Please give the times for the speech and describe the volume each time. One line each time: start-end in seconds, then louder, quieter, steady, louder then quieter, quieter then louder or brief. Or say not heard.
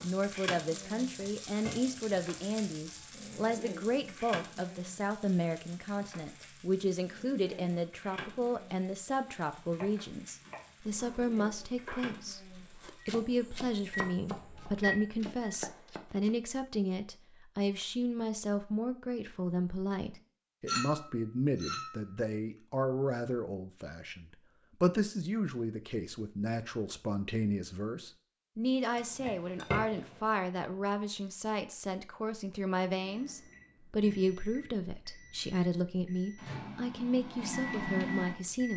0.0-38.7 steady.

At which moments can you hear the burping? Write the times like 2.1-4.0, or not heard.
not heard.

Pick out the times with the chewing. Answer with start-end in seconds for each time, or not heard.
not heard.